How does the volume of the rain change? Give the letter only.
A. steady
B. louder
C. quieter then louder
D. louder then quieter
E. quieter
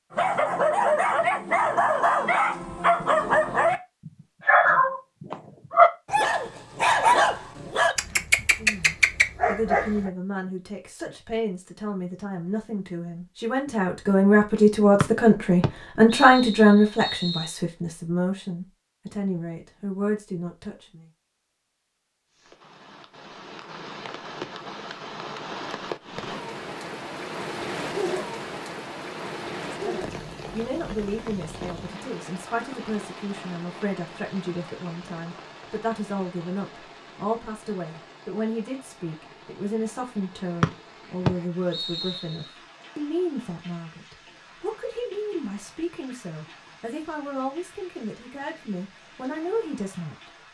E.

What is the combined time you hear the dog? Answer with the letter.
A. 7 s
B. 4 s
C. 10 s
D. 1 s
C.